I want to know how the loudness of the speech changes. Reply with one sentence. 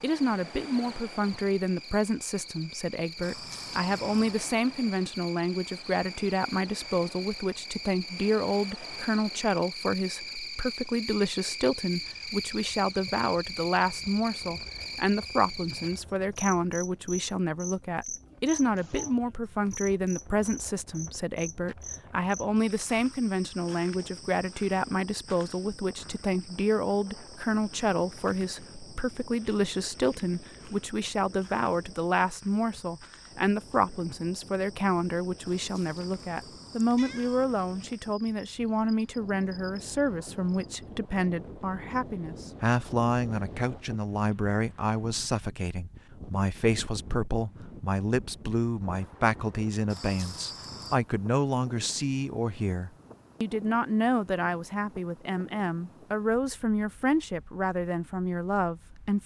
The loudness of the speech stays about the same.